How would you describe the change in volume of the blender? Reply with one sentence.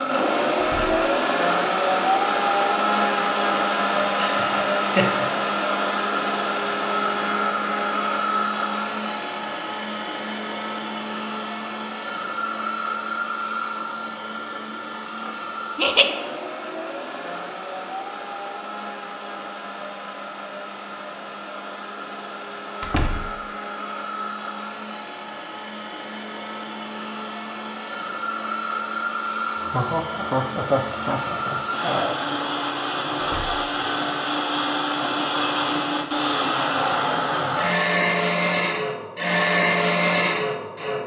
The loudness of the blender goes down, then up.